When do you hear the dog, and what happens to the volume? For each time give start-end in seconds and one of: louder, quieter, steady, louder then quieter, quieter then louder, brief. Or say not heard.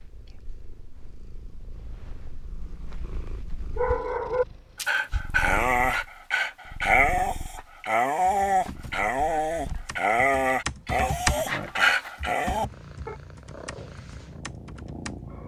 3.8-13.2 steady.